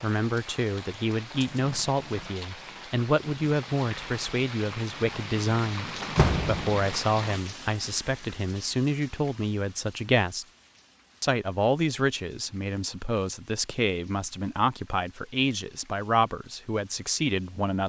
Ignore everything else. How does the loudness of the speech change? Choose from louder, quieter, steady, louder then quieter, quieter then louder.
steady.